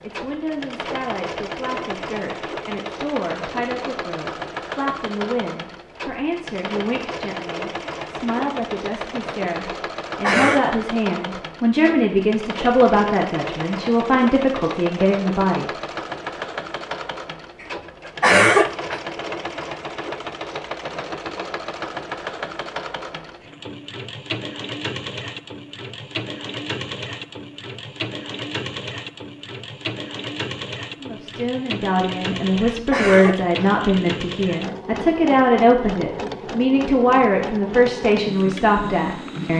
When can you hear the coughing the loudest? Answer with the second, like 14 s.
18 s.